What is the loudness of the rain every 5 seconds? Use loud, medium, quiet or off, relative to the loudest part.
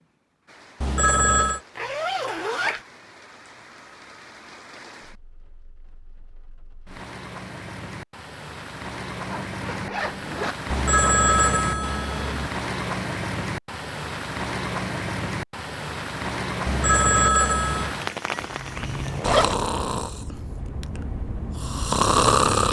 quiet, medium, loud, loud, off.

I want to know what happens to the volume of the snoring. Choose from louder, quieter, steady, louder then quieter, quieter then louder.
quieter then louder.